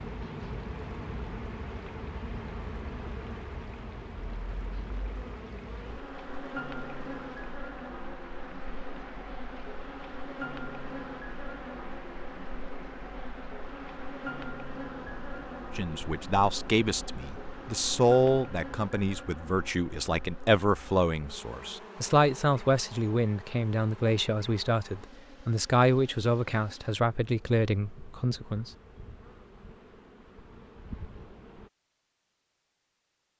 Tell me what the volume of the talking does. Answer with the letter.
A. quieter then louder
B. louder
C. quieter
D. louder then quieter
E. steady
E.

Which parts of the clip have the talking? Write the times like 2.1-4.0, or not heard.
15.8-28.7.